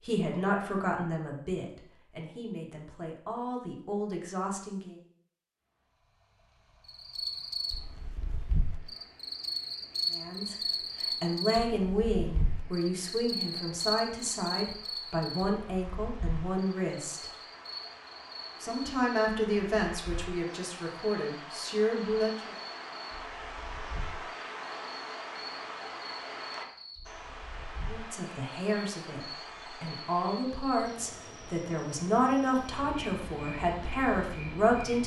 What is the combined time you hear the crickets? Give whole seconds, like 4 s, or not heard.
28 s.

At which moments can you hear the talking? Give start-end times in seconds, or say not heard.
0.0-5.0, 10.1-17.3, 18.6-22.6, 27.9-35.0.